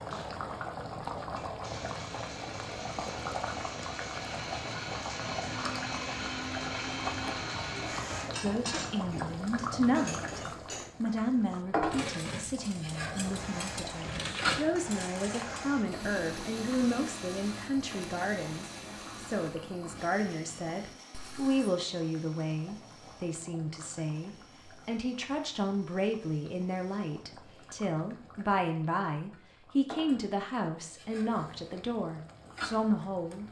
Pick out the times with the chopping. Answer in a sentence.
The chopping can't be heard in this clip.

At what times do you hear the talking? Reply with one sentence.
You can hear the talking from 8.4 to 10.4 s and from 11.0 to 33.4 s.